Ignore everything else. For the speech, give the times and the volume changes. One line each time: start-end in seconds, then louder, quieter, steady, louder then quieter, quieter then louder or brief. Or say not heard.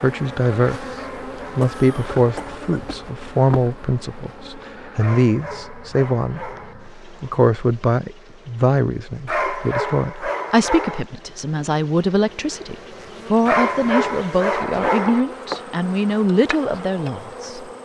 0.0-17.6 steady.